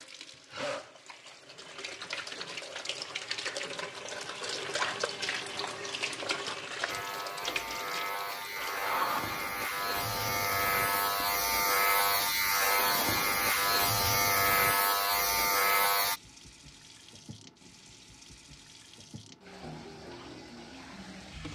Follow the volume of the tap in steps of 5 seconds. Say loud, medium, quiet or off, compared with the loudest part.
loud, loud, medium, quiet, medium.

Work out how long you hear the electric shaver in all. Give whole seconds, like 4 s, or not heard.
9 s.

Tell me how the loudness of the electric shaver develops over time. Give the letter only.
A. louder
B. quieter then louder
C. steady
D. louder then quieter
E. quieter
A.